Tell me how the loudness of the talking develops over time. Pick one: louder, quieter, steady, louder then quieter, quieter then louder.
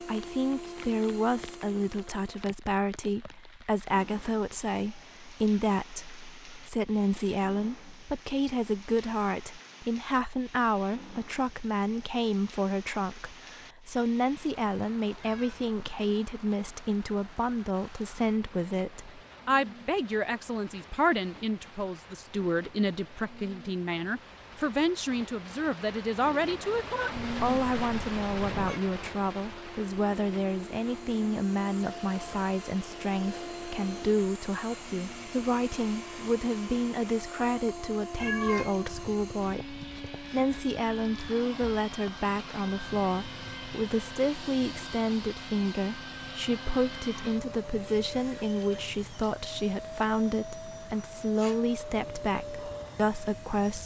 steady.